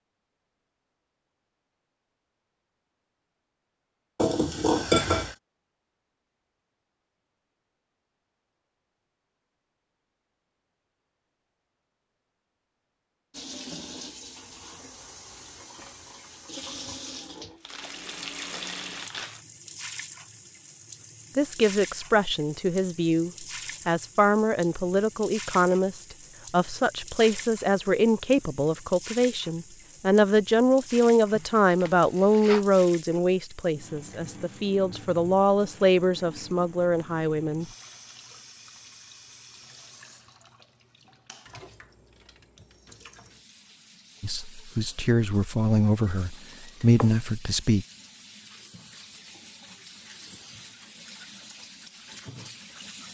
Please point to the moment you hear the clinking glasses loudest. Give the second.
5 s.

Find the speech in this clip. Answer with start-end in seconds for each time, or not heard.
21.4-37.6, 44.2-47.9.